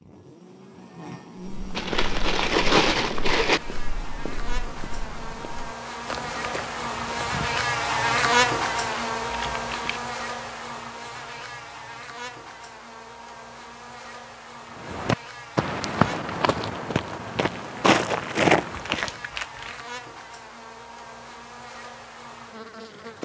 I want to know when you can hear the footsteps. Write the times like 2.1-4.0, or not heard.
1.4-7.6, 14.8-19.1.